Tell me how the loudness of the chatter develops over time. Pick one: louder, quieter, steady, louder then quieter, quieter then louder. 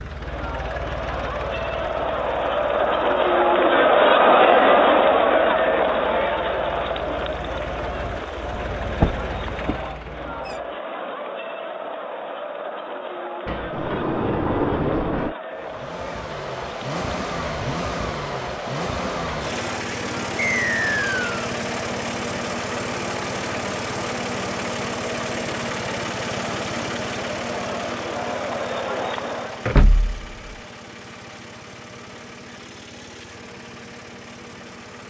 quieter.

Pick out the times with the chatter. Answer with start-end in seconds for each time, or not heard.
0.0-29.7.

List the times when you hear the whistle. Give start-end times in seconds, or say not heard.
20.4-21.4.